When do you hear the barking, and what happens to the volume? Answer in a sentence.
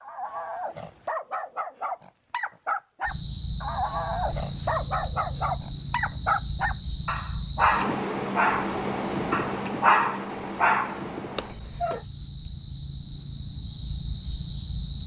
You can hear the barking from 0.0 to 12.0 s, getting louder.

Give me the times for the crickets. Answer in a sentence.
The crickets can be heard from 3.0 to 15.0 s.